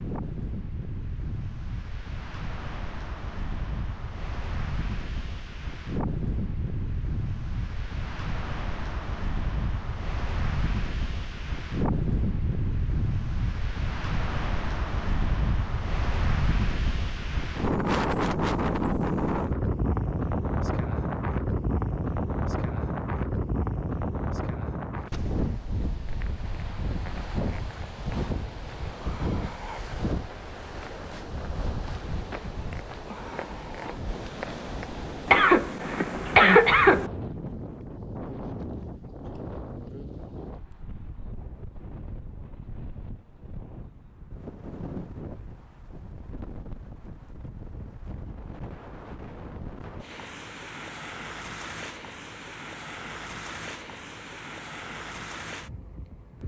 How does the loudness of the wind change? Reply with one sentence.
The volume of the wind goes up, then down.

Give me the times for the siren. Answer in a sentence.
You can't hear the siren here.